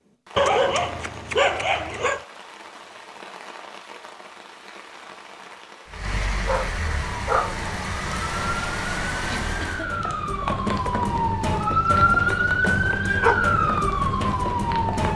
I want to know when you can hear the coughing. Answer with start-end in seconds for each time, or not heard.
9.1-9.9.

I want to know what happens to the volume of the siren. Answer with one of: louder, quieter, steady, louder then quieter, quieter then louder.
louder.